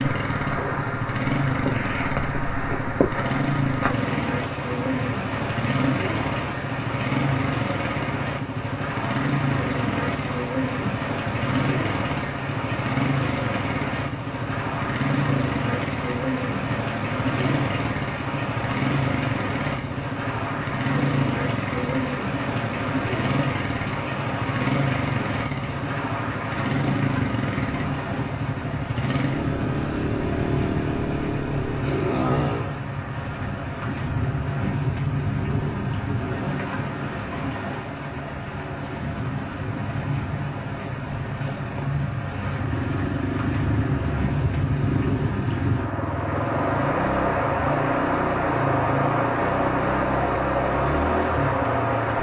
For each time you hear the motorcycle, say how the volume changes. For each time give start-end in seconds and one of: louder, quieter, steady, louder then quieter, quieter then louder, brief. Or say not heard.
0.0-32.8 steady
42.1-52.1 steady.